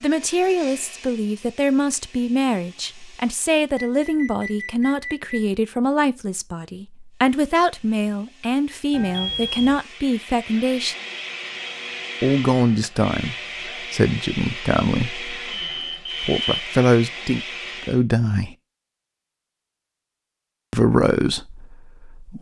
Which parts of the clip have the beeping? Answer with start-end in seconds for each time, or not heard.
3.8-5.4, 8.9-9.8, 15.7-16.6.